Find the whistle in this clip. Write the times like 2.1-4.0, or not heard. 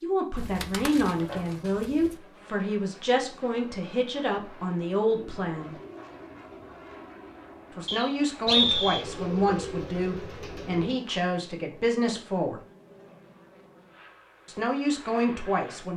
7.8-9.0.